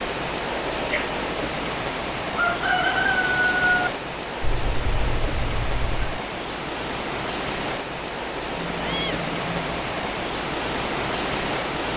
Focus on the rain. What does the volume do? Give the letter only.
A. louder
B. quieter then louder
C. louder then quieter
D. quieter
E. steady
E.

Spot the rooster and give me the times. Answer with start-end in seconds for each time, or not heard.
2.4-3.9.